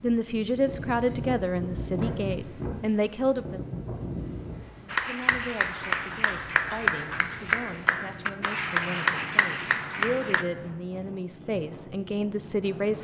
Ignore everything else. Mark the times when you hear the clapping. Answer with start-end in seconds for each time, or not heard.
4.8-10.4.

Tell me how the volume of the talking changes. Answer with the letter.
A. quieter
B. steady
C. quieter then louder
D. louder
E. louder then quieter
C.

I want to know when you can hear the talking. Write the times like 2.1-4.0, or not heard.
0.0-3.6, 4.8-13.0.